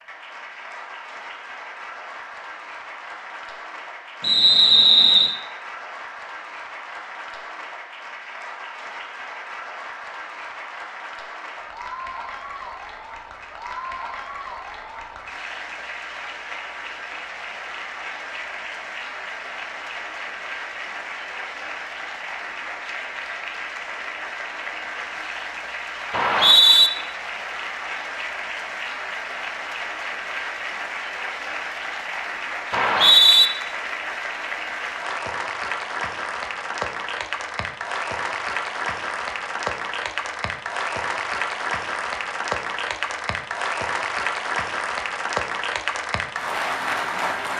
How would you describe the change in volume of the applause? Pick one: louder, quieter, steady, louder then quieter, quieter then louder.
louder.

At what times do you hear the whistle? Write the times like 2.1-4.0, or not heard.
4.2-5.3, 26.1-26.9, 32.7-33.5.